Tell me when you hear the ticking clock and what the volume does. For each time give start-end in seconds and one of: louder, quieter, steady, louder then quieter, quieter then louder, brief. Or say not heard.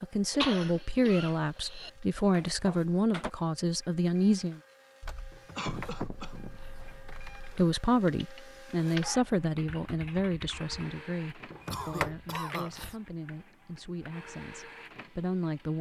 not heard.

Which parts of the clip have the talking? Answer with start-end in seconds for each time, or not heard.
0.0-4.6, 7.4-15.7.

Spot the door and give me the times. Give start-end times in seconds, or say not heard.
2.3-3.3, 5.3-7.0, 11.5-12.9.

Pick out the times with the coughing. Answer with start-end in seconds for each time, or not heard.
0.3-1.9, 5.5-6.6, 11.7-12.8.